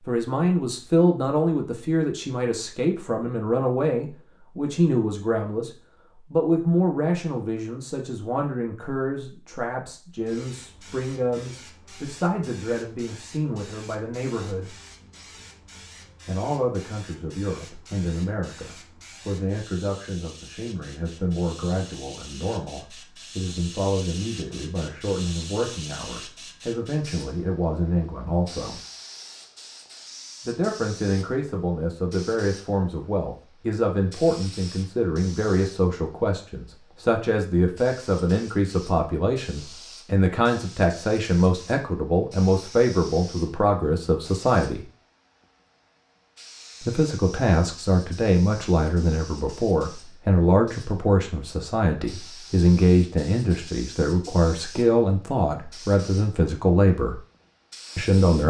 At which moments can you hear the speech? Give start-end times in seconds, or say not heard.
0.1-14.8, 16.2-28.8, 30.4-44.9, 46.8-57.2, 58.0-58.4.